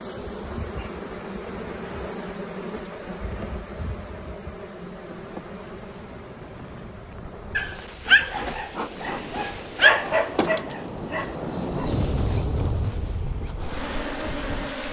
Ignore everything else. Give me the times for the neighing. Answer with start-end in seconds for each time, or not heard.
not heard.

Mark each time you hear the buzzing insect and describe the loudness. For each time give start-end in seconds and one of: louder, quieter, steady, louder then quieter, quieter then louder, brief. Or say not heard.
0.0-14.8 quieter then louder.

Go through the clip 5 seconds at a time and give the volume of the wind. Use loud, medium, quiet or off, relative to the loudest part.
quiet, medium, loud.